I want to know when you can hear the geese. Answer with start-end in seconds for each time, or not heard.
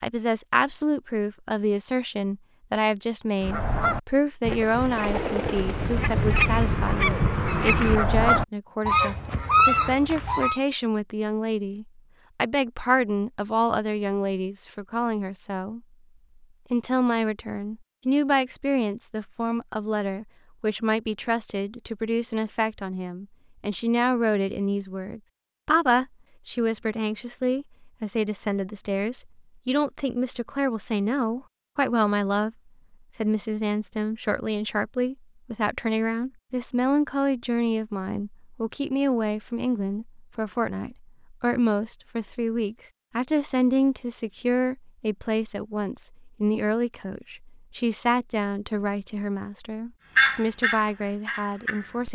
3.4-10.6, 50.1-52.1.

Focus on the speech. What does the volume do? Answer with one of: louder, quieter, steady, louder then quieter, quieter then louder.
steady.